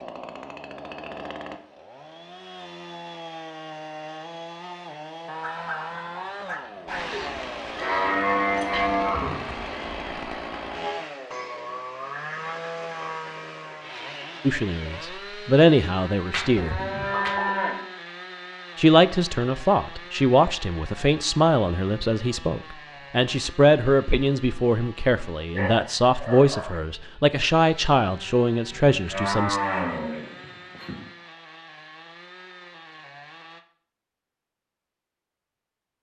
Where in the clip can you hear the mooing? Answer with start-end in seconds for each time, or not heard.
7.8-9.4, 16.3-17.9, 28.7-31.0.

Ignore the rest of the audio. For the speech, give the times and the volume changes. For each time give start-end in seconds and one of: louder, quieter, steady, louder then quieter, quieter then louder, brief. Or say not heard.
14.4-16.8 brief
18.8-29.6 steady.